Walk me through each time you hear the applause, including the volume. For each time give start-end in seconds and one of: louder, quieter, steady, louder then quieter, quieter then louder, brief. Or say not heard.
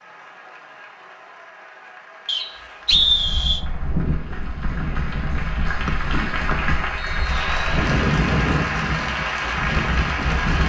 0.0-10.6 louder.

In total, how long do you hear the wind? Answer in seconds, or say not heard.
8 s.